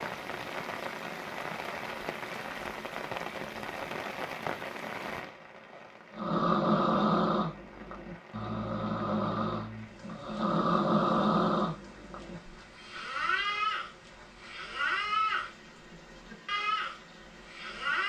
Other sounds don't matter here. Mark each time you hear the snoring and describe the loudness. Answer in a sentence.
You can hear the snoring from 6.1 to 18.0 s, getting quieter.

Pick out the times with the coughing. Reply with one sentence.
The coughing can't be heard in this clip.